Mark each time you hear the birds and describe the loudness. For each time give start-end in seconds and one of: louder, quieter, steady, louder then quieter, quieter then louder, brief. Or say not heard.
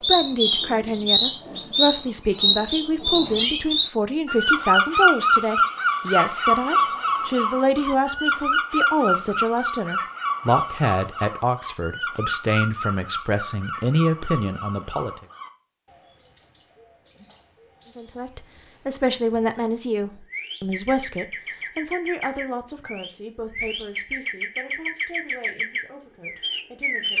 0.0-27.1 quieter then louder.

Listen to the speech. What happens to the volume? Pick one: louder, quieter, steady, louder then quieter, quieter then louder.
quieter.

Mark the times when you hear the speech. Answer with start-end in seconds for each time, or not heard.
0.1-15.2, 17.9-27.1.